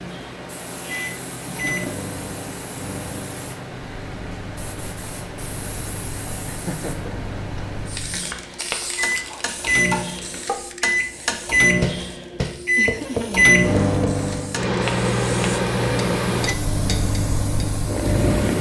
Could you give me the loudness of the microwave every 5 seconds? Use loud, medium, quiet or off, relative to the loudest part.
quiet, medium, loud, loud.